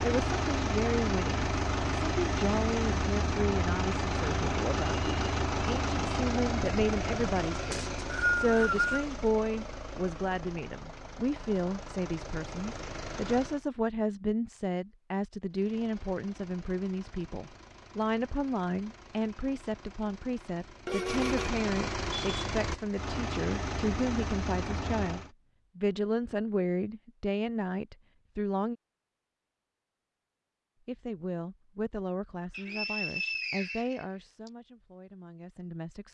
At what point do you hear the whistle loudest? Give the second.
8 s.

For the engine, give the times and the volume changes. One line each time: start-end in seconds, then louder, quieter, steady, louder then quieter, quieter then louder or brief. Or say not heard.
0.0-13.7 quieter
15.5-25.3 louder.